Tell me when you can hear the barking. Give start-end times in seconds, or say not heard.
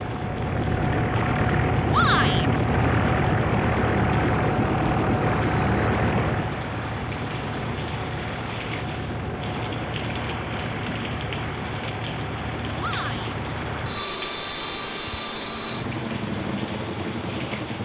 not heard.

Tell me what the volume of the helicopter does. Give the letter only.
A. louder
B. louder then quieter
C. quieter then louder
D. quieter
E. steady
D.